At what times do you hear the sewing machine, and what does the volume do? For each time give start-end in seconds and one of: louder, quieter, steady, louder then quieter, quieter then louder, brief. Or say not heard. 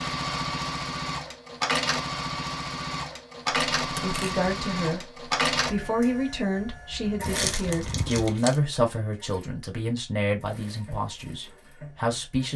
0.0-12.5 quieter.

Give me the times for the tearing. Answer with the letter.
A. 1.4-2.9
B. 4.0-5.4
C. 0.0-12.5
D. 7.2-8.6
D.